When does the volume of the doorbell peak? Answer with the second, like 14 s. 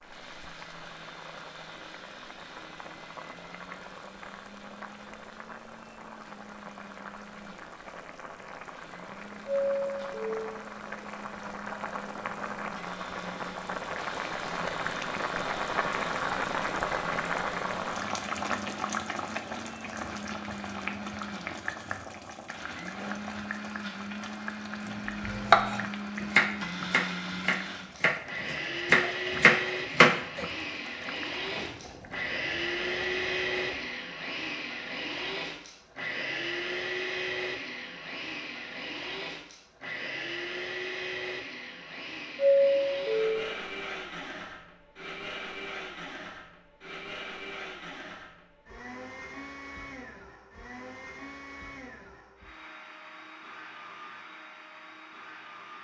43 s.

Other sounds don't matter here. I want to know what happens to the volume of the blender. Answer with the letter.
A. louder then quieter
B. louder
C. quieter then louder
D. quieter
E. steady
A.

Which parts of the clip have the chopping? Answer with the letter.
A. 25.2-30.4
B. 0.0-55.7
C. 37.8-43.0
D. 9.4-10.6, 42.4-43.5
A.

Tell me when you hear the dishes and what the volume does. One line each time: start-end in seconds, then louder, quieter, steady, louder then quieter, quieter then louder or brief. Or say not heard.
not heard.